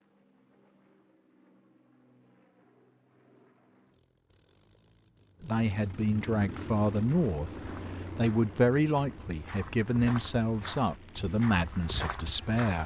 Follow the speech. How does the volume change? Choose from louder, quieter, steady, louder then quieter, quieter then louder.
steady.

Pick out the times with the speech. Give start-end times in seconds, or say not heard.
5.4-12.8.